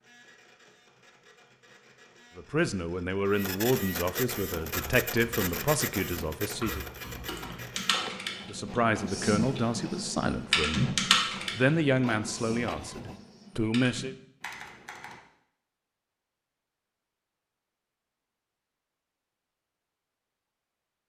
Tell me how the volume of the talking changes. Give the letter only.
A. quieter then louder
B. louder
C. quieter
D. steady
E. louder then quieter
D.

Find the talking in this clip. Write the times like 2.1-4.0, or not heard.
2.4-6.9, 8.4-14.2.